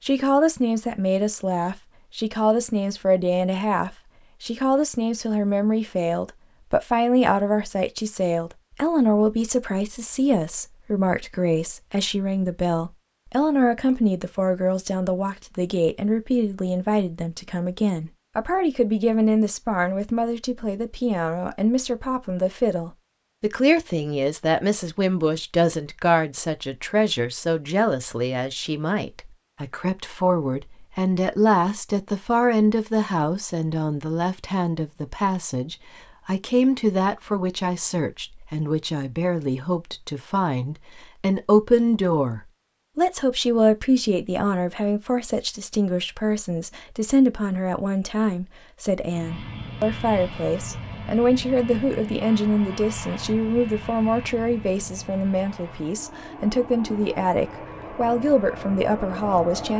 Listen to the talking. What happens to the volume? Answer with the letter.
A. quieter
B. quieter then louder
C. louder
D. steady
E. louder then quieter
D.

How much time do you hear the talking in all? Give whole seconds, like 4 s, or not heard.
60 s.